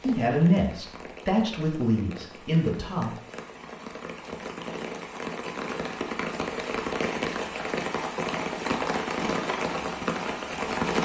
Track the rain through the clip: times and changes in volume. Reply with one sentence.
You can hear the rain from 0.0 to 10.9 s, getting louder.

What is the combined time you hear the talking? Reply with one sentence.
The talking can be heard for 3 seconds in total.